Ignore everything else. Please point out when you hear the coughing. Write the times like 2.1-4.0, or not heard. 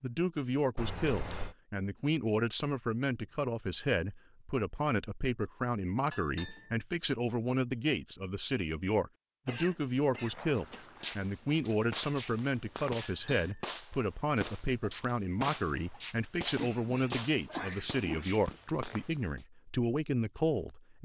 0.8-1.6, 9.4-11.2, 16.6-18.3.